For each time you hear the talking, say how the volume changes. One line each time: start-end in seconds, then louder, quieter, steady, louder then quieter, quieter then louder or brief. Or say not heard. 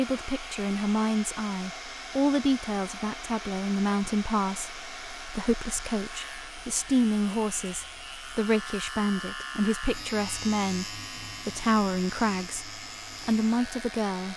0.0-14.3 steady.